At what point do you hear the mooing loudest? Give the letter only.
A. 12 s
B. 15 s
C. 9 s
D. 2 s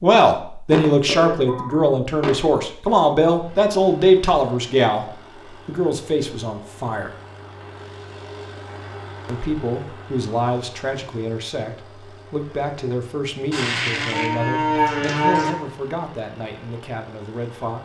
B.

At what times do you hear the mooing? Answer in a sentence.
You can hear the mooing from 0.7 to 2.4 s and from 13.5 to 15.6 s.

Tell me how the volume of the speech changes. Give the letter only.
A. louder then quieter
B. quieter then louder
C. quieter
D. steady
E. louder
C.